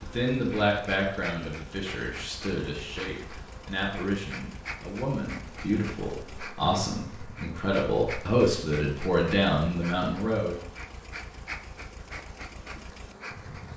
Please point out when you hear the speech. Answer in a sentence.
You can hear the speech from 0.0 to 10.6 s.